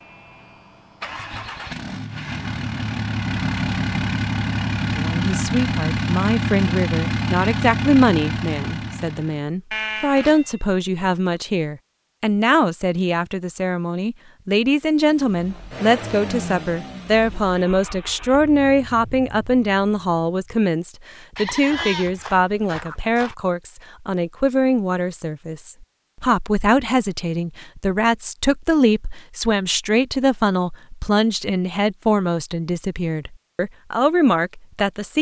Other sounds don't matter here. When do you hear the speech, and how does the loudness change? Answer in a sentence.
You can hear the speech from 5.0 to 35.1 s, at a steady volume.